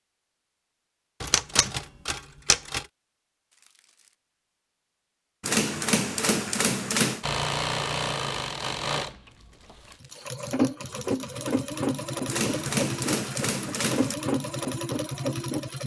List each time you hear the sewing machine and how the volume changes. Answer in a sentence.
You can hear the sewing machine from 7.2 to 15.8 s, at a steady volume.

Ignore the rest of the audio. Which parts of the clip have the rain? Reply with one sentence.
You can't hear the rain here.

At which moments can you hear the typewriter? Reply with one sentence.
The typewriter can be heard from 1.2 to 2.9 s, from 5.4 to 7.2 s and from 12.2 to 14.2 s.